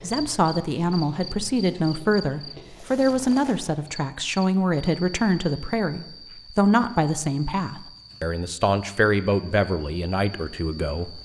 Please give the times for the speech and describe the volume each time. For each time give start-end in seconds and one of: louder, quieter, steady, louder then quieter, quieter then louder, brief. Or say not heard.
0.0-11.1 steady.